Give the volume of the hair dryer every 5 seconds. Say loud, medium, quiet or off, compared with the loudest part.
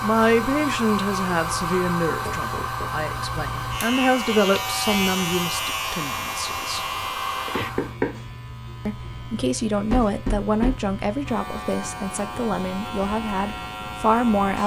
loud, loud, off.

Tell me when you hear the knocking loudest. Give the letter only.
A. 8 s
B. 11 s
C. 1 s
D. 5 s
A.